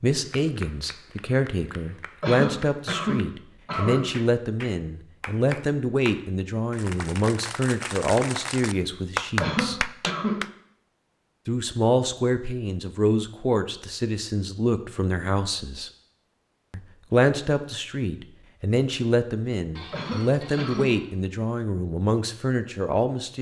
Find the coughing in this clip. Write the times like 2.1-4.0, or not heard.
2.2-4.0, 9.4-10.4, 19.9-21.0.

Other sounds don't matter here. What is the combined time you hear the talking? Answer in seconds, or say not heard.
21 s.